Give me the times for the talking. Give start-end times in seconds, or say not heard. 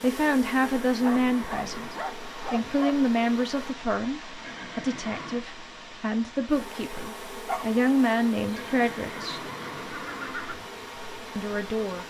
0.0-9.4, 11.3-12.0.